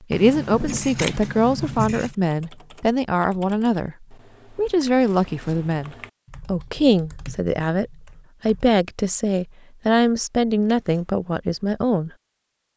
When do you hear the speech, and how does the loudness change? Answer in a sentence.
You can hear the speech from 0.1 to 12.1 s, at a steady volume.